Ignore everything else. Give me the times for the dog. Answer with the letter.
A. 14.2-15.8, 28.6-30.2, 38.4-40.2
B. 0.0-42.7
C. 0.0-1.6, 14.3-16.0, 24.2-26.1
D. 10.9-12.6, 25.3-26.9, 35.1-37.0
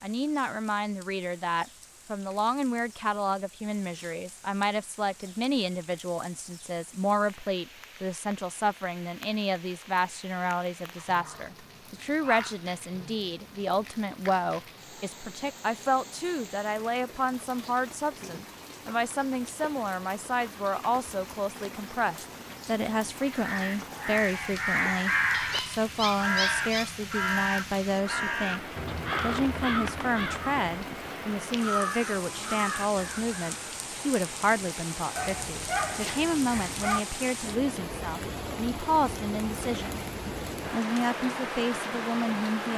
D.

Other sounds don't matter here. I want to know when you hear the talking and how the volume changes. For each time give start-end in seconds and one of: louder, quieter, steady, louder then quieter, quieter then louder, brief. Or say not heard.
0.0-42.7 steady.